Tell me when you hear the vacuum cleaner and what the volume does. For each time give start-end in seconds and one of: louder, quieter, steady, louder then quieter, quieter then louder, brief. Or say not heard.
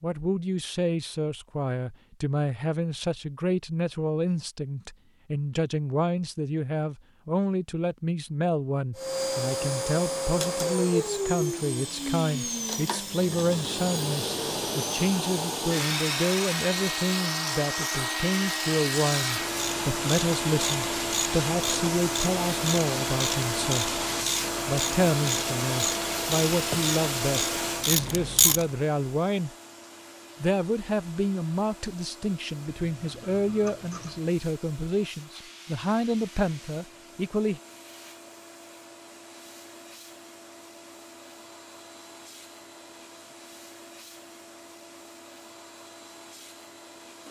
8.9-47.2 quieter.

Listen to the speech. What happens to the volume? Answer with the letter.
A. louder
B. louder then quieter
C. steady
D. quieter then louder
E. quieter
C.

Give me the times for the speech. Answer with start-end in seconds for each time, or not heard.
0.0-23.9, 24.6-29.5, 30.4-37.6.